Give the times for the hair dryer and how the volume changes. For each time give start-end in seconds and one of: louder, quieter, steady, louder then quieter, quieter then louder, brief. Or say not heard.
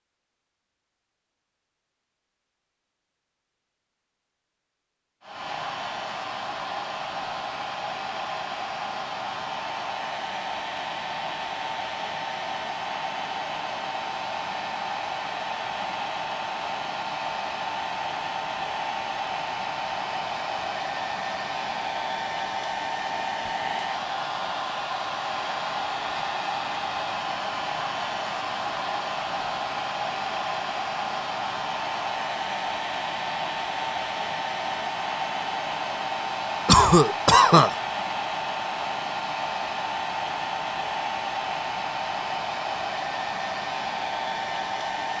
5.2-45.1 steady.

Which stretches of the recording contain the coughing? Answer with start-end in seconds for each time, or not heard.
36.6-37.8.